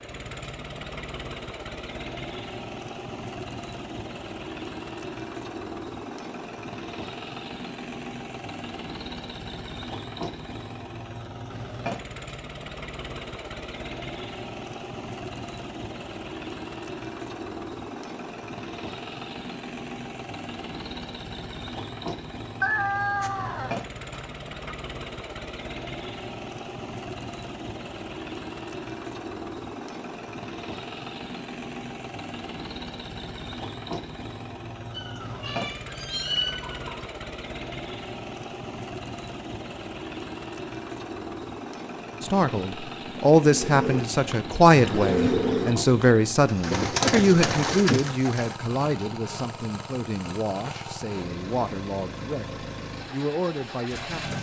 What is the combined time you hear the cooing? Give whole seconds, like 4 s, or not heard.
5 s.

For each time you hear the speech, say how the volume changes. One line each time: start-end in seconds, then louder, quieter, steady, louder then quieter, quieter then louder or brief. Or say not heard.
42.2-54.3 quieter.